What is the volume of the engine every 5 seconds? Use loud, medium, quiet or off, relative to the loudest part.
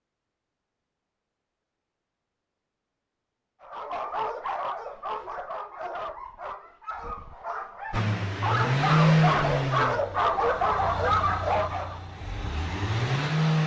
off, loud, medium.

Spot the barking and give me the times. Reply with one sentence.
The barking can be heard from 3.6 to 12.0 s.